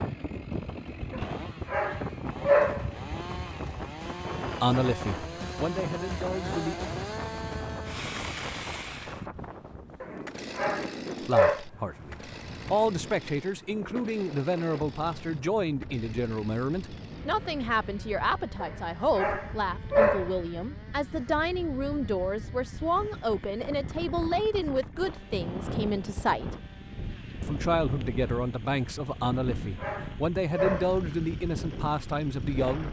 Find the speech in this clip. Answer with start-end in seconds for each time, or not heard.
4.6-6.8, 11.2-26.6, 27.4-32.8.